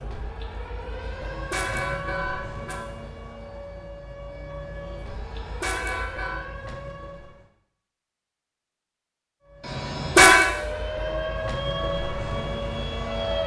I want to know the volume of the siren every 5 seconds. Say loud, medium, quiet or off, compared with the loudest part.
medium, medium, loud.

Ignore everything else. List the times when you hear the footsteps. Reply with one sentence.
The footsteps can't be heard in this clip.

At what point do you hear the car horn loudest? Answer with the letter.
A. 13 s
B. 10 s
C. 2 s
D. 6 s
B.